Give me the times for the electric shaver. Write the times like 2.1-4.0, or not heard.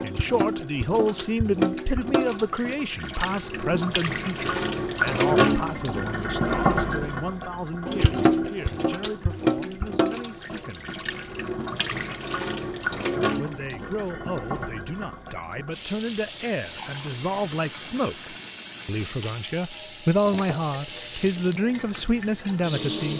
not heard.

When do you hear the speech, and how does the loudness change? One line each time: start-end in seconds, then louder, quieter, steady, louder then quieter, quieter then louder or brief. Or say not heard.
0.0-10.9 quieter
13.3-23.1 louder.